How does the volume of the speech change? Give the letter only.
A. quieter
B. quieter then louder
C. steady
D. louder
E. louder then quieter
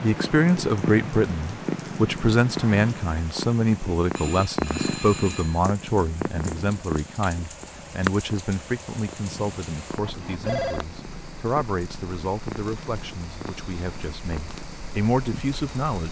A.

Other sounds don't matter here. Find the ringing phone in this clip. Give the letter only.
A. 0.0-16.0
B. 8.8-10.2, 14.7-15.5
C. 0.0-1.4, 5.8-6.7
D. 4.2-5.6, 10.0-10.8
D.